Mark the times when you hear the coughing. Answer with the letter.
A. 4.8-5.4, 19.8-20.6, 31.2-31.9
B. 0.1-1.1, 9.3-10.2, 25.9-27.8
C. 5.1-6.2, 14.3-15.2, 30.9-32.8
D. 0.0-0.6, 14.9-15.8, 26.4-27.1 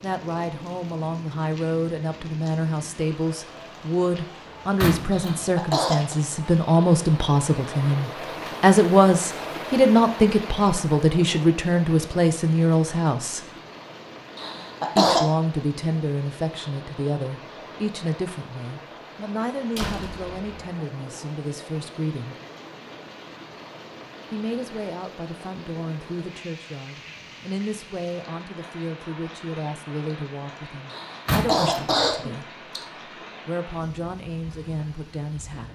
C.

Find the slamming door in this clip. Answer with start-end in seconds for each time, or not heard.
4.8-5.4, 19.8-20.6, 31.2-31.9.